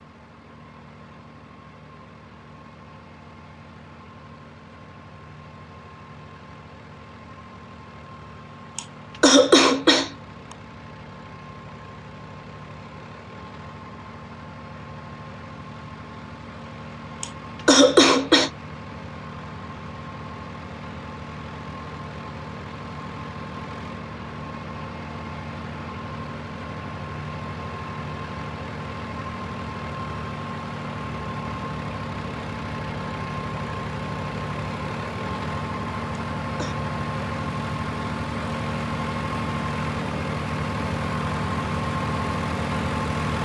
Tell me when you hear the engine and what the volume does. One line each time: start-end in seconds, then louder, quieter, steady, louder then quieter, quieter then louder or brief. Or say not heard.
0.0-43.4 louder.